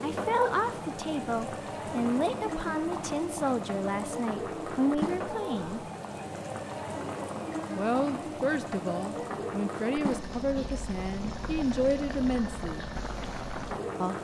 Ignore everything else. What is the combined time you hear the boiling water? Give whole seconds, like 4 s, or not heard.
14 s.